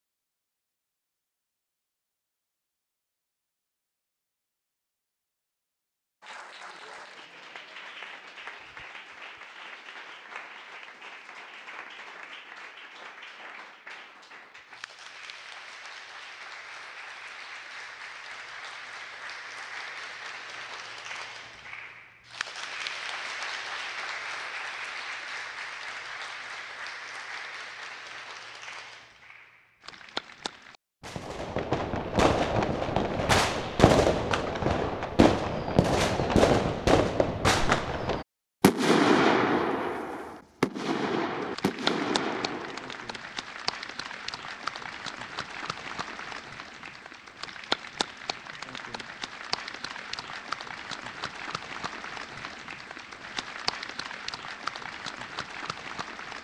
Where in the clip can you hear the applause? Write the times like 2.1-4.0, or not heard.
6.2-30.8, 41.3-56.3.